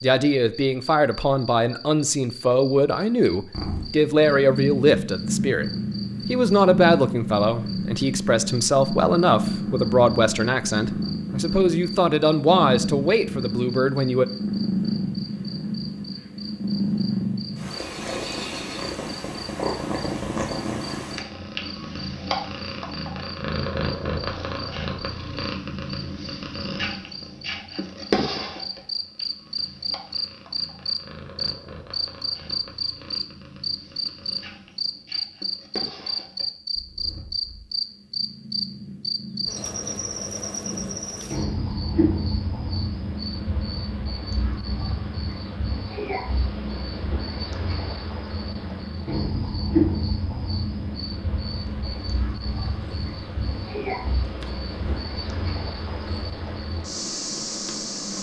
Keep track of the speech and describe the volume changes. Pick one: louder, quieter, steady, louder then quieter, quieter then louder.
steady.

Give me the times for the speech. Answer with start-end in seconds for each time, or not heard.
0.0-14.2.